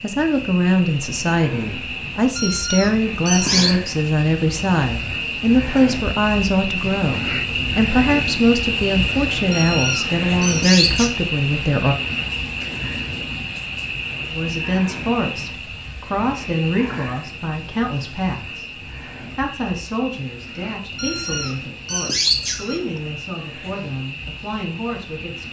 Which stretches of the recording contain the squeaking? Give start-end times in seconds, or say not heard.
2.4-3.8, 9.5-11.2, 20.9-22.9.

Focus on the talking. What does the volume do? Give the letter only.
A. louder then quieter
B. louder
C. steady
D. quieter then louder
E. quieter
E.